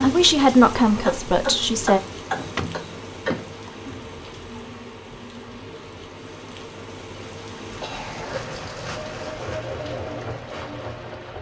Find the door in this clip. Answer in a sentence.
You can hear the door from 2.3 to 3.7 s.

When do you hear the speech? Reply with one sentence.
The speech can be heard from 0.0 to 2.0 s.